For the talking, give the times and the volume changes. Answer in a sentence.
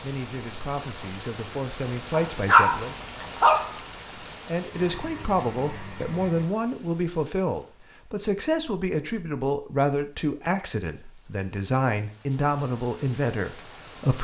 You can hear the talking briefly from 0.0 to 3.0 s; and from 4.5 to 14.1 s, at a steady volume.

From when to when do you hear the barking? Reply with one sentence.
The barking can be heard from 2.1 to 3.7 s.